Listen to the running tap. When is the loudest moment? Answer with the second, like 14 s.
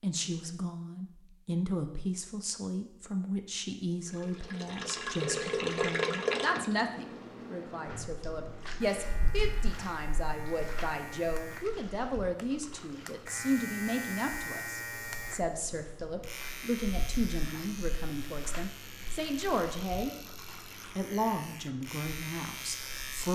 6 s.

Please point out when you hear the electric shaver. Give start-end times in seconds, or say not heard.
8.8-23.3.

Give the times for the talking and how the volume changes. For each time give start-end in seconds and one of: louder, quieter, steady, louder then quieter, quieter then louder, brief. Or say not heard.
0.0-20.1 steady
20.9-23.3 brief.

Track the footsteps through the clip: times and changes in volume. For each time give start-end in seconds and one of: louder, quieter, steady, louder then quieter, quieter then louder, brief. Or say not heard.
not heard.